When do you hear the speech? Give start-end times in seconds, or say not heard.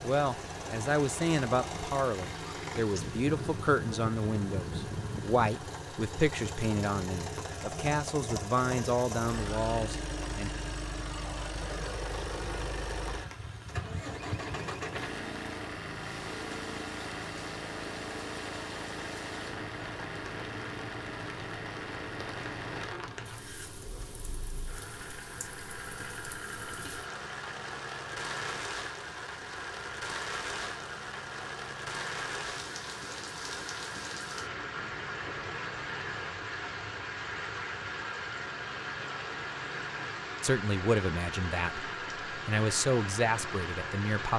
0.0-10.5, 40.4-44.3.